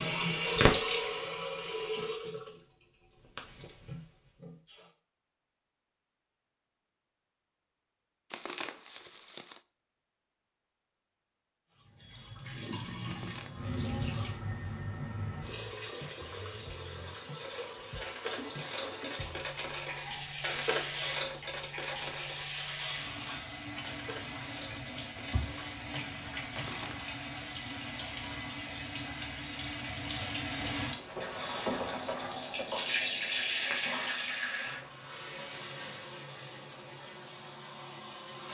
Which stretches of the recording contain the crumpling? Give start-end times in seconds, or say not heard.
8.3-9.6, 13.1-13.7, 26.5-27.1.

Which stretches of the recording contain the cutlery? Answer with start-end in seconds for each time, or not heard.
17.4-26.9.